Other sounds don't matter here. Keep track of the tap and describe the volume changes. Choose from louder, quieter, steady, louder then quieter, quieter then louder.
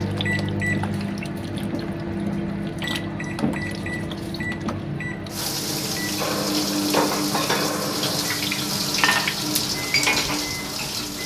louder.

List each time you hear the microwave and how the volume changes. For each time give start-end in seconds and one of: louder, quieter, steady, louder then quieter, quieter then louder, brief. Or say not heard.
0.0-11.2 quieter.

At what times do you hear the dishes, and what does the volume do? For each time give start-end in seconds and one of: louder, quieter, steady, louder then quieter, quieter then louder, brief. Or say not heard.
6.2-11.2 steady.